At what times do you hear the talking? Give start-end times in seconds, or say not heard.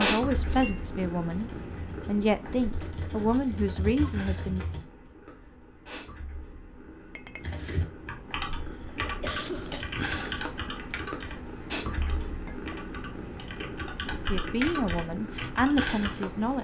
0.0-4.7, 14.2-16.5.